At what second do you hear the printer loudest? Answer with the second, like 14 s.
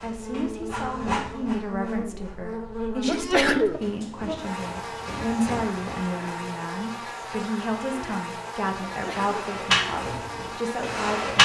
11 s.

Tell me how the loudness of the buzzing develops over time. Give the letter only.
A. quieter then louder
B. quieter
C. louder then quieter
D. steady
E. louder
D.